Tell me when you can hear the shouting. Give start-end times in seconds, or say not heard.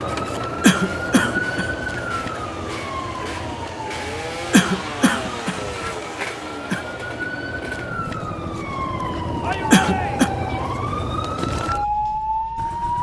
9.4-10.3.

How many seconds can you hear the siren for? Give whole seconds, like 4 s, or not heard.
13 s.